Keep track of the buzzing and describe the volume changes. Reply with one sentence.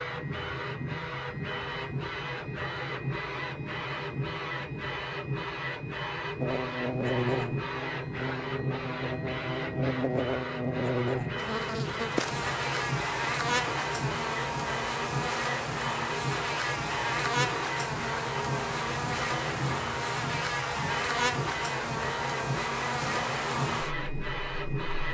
The loudness of the buzzing stays about the same.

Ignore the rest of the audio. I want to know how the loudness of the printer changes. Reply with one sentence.
The loudness of the printer stays about the same.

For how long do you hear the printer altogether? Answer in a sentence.
The printer can be heard for 25 seconds in total.